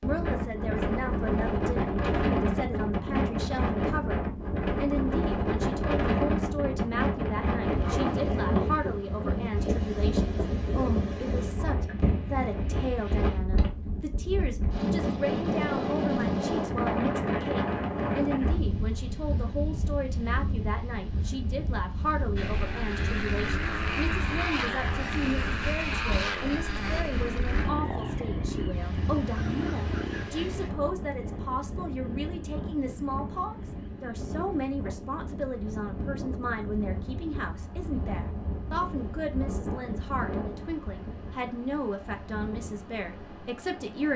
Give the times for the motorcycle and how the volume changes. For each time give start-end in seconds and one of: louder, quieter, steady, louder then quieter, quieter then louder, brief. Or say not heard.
22.4-34.6 quieter.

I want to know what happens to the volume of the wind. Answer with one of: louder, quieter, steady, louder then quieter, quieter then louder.
quieter.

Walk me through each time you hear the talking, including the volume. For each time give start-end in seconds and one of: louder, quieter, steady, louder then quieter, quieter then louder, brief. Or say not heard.
0.0-4.2 steady
4.8-44.1 steady.